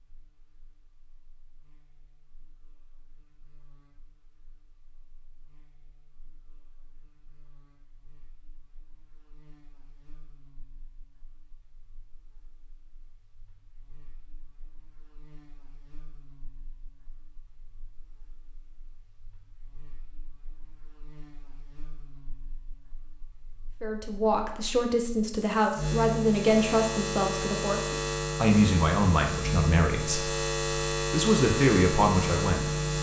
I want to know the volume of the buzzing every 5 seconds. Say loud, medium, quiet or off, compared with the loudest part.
quiet, quiet, quiet, quiet, quiet, loud, loud.